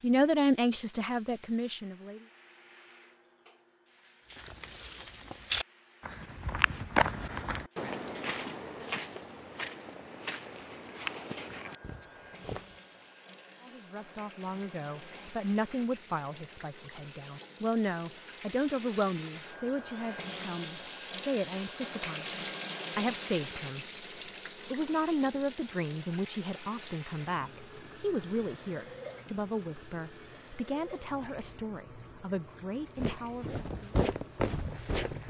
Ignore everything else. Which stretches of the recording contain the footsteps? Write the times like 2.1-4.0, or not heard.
4.3-12.8, 33.0-35.2.